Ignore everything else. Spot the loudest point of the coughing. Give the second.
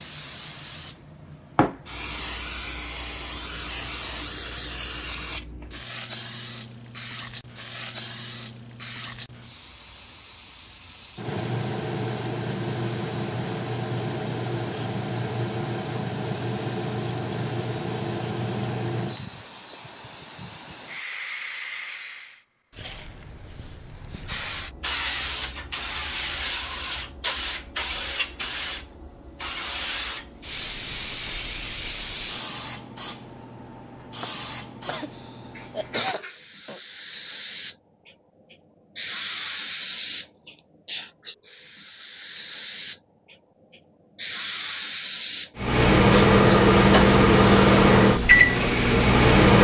36 s.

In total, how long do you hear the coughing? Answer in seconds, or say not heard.
2 s.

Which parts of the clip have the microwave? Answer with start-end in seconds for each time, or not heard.
45.5-49.5.